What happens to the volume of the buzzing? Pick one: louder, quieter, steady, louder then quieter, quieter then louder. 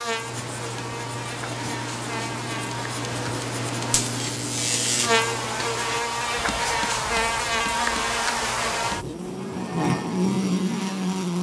louder.